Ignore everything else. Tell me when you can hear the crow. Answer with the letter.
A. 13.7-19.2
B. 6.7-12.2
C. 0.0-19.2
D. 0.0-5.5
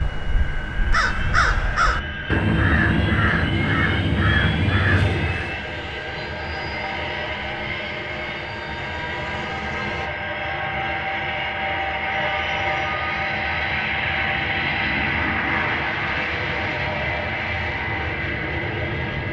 D.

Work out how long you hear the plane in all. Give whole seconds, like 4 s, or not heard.
19 s.